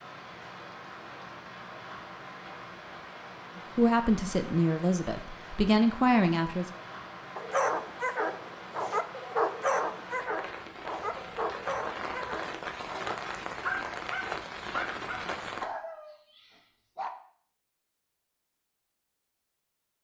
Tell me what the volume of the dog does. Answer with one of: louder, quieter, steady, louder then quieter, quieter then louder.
quieter.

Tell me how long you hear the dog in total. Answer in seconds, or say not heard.
10 s.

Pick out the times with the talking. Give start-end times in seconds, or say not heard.
3.5-6.7.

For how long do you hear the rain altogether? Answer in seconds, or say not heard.
16 s.